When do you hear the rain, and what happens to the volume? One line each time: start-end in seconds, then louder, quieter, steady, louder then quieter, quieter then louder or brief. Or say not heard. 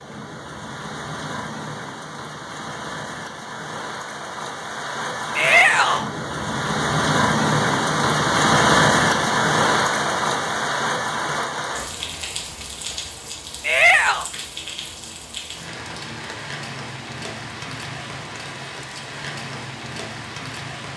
0.0-20.9 louder then quieter.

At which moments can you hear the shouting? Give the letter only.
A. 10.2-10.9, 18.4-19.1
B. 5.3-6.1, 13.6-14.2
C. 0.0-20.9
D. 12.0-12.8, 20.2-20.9
B.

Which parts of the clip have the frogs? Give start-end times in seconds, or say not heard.
not heard.